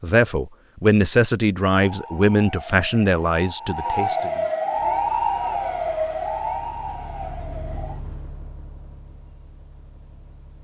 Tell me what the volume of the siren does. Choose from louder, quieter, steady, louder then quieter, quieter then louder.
louder then quieter.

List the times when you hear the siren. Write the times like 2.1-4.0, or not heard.
1.8-8.3.